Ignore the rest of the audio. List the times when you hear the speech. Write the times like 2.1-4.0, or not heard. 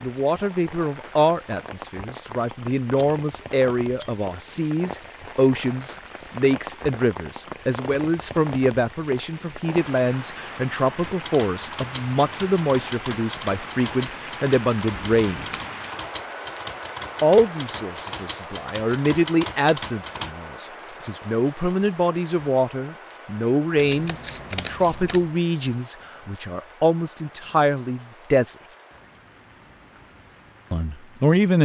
0.0-15.6, 17.2-28.6, 30.7-31.5.